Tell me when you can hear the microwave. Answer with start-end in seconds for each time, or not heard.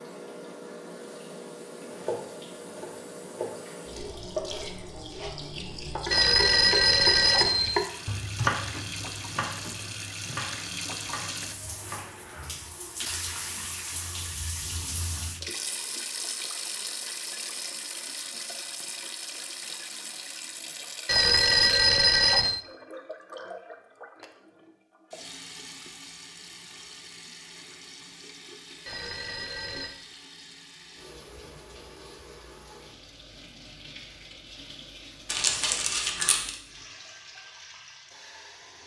not heard.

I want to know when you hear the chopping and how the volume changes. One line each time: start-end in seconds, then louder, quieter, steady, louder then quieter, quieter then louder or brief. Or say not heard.
1.9-12.1 louder then quieter.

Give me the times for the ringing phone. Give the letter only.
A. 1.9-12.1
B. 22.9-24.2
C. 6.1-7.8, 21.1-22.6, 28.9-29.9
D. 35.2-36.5
C.